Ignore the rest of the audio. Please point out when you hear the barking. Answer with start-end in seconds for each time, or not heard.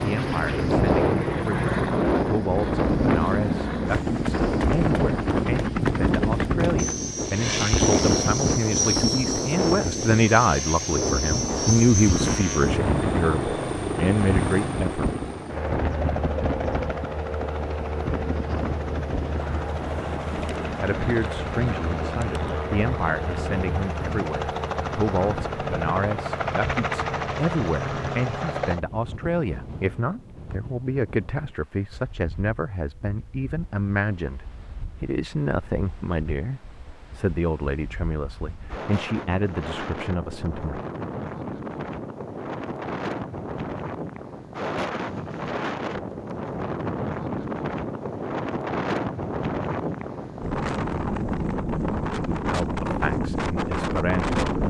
not heard.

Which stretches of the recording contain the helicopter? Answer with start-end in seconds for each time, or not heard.
0.0-28.8.